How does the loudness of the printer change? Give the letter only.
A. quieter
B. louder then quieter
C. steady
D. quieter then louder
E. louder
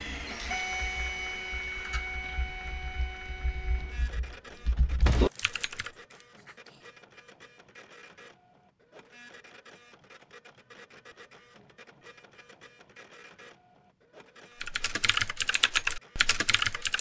A.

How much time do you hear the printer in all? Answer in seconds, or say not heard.
17 s.